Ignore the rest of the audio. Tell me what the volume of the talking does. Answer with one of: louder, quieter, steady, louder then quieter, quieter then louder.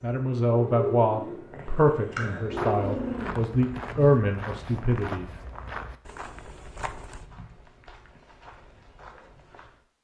quieter then louder.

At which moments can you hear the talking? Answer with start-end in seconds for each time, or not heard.
0.0-5.3.